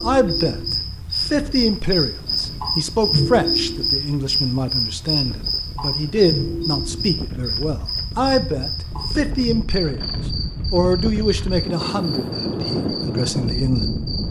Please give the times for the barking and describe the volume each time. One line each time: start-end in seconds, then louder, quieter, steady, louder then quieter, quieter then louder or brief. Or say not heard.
not heard.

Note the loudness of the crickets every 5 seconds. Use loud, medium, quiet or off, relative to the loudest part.
loud, loud, medium.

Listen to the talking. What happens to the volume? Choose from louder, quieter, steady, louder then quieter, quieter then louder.
steady.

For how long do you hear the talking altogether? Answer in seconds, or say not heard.
14 s.